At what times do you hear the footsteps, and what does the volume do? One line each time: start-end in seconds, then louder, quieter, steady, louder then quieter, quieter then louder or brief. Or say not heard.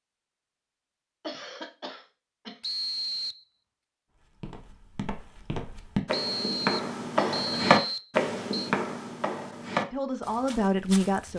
4.4-11.3 louder then quieter.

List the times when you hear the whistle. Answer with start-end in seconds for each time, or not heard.
2.6-3.5, 6.1-8.7.